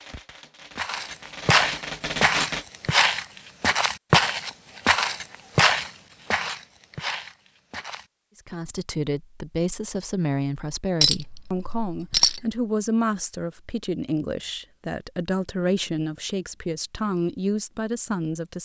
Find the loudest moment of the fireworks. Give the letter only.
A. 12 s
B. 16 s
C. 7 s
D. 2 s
D.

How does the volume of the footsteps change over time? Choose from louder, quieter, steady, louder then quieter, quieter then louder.
quieter.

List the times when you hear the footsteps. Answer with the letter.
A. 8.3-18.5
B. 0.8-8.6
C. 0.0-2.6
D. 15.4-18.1
B.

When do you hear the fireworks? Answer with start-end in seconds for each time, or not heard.
0.0-2.6.